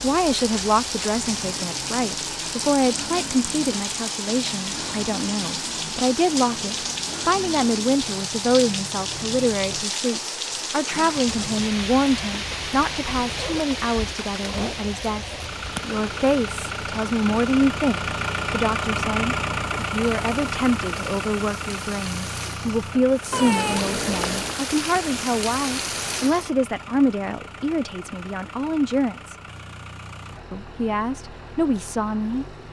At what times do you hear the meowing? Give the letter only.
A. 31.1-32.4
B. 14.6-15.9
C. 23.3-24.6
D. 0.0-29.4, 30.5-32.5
C.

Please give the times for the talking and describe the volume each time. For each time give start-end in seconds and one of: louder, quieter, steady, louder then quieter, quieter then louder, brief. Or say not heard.
0.0-29.4 steady
30.5-32.5 brief.